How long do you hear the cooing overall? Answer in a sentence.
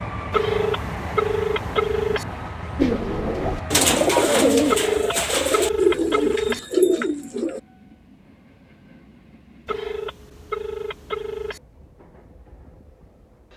The cooing can be heard for 5 seconds in total.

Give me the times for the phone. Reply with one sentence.
You can hear the phone from 0.3 to 2.2 s, from 4.7 to 6.6 s and from 9.7 to 11.6 s.